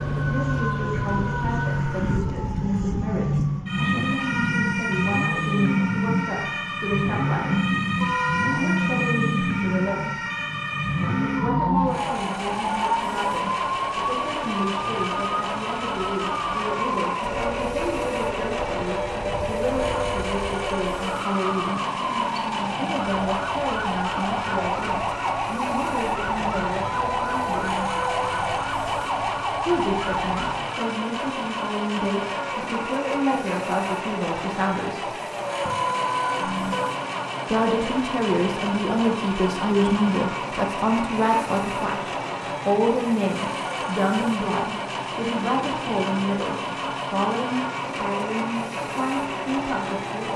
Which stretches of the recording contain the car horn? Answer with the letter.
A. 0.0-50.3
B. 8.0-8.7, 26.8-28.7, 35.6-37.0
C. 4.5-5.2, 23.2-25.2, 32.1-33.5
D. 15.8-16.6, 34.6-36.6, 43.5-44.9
B.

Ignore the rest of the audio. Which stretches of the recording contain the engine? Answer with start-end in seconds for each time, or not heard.
0.0-50.3.